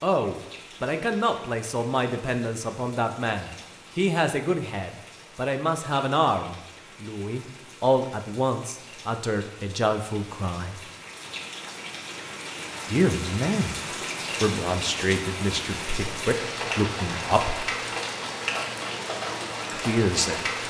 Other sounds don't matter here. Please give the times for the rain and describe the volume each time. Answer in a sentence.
You can hear the rain from 0.0 to 20.6 s, getting louder.